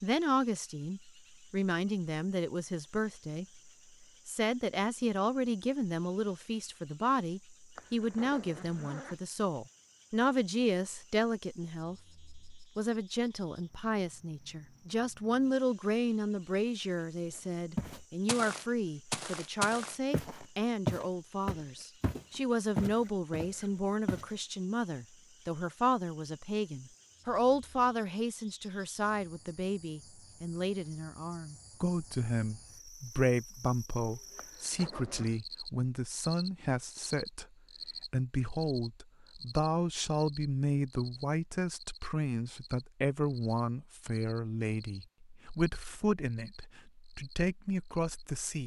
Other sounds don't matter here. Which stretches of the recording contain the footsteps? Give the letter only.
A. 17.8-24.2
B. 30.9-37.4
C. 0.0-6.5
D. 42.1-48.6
A.